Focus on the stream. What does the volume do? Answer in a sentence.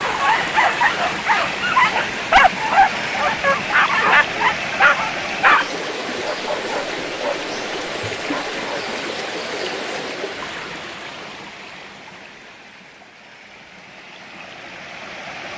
The volume of the stream goes down.